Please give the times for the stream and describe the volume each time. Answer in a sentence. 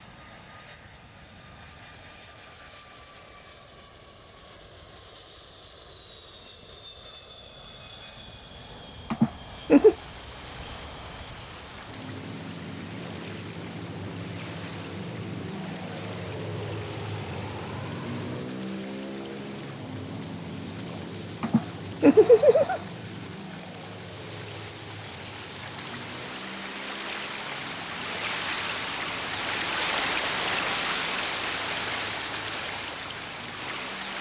You can hear the stream from 9.8 to 34.1 s, getting louder.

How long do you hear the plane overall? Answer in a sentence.
The plane can be heard for 34 seconds in total.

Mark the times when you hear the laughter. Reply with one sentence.
You can hear the laughter from 9.1 to 9.9 s and from 21.4 to 22.8 s.